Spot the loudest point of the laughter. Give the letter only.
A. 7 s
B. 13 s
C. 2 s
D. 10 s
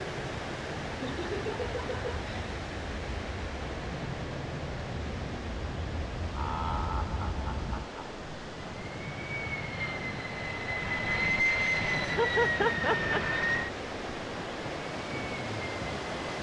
B.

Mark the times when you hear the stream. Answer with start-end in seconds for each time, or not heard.
0.0-16.3.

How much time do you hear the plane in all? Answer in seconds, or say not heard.
16 s.